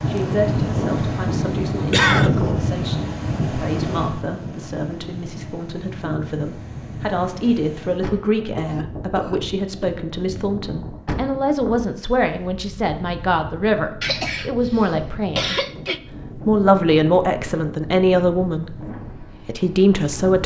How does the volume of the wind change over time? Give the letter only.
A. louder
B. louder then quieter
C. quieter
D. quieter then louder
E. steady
C.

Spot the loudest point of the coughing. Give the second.
2 s.